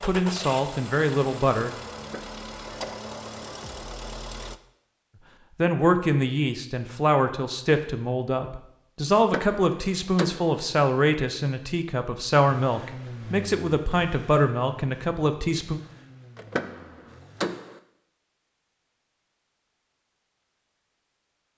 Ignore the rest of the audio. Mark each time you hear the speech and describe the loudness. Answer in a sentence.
You can hear the speech briefly from 0.0 to 1.7 s; and from 5.5 to 15.8 s, at a steady volume.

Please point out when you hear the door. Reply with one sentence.
You can hear the door from 1.9 to 2.5 s, from 9.2 to 10.6 s and from 16.4 to 17.8 s.